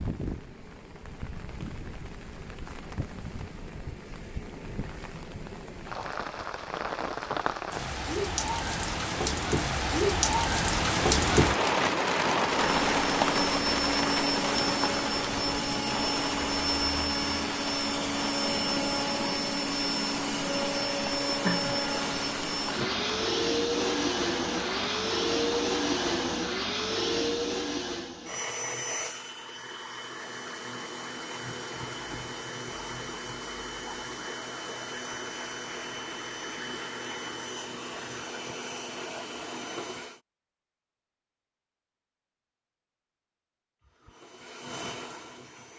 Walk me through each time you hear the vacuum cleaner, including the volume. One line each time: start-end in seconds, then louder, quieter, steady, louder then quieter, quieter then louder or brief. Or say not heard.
12.4-40.2 quieter
43.8-45.7 brief.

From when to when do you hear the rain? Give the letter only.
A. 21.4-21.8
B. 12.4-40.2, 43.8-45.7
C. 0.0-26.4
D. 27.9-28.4
C.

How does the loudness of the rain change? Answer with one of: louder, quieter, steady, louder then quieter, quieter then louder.
louder then quieter.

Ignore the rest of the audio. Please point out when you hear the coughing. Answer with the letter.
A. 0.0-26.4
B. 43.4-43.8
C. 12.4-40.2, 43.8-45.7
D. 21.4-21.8
D.